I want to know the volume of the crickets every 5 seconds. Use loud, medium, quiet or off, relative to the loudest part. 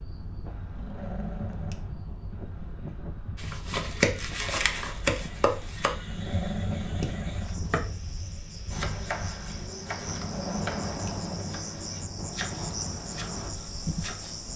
medium, medium, loud.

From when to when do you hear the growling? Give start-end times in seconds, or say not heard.
0.8-1.8, 6.0-7.6, 10.1-11.5.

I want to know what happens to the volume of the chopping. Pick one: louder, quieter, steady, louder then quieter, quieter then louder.
quieter.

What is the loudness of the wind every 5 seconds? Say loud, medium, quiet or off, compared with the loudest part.
medium, medium, loud.